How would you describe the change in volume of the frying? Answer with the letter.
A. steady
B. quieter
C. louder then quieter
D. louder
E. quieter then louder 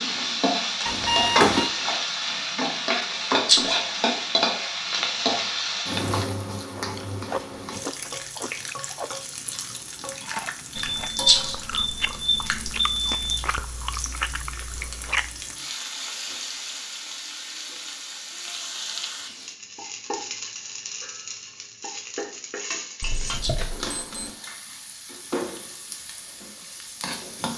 B.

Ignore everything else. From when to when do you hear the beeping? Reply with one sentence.
You can hear the beeping from 0.8 to 1.7 s, from 10.8 to 13.4 s and from 23.0 to 24.3 s.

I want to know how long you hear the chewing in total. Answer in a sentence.
The chewing can be heard for 9 seconds in total.